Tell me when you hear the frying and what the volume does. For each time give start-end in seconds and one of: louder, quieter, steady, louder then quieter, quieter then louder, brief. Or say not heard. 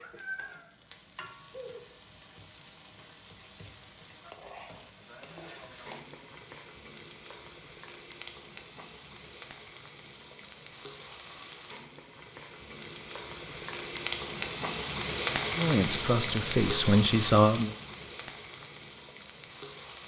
0.0-20.0 louder.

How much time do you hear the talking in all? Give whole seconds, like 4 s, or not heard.
2 s.